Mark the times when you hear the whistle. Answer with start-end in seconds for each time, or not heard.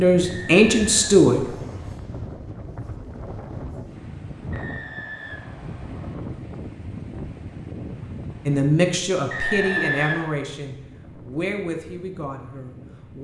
0.2-1.9, 4.5-6.2, 9.3-10.3.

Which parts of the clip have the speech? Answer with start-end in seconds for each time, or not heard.
0.0-1.4, 8.4-13.1.